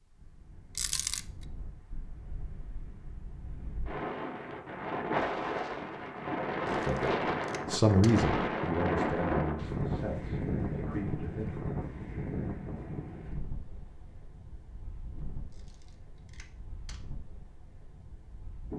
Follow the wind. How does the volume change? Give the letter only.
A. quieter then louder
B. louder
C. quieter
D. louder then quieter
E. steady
D.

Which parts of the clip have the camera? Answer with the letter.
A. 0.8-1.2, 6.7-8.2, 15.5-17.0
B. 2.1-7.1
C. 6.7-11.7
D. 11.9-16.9
A.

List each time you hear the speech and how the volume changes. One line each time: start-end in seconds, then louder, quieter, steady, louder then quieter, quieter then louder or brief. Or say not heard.
6.7-11.7 quieter.